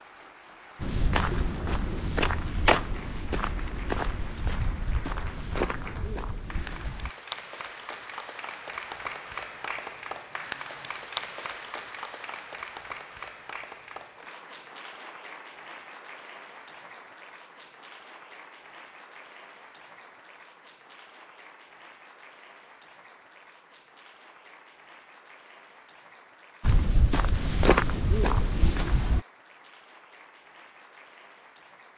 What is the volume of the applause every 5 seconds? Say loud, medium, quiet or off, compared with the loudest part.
medium, loud, loud, medium, quiet, quiet, quiet.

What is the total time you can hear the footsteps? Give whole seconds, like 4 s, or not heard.
9 s.